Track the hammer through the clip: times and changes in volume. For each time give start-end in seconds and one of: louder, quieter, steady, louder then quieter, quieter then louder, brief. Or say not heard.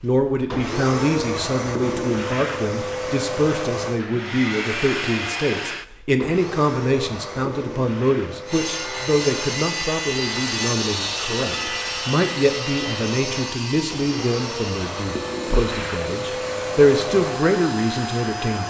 not heard.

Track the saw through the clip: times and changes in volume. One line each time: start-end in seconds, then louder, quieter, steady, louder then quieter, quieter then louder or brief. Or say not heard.
8.4-18.1 quieter.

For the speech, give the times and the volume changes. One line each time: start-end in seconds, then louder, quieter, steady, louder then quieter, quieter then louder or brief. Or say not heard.
0.0-18.6 steady.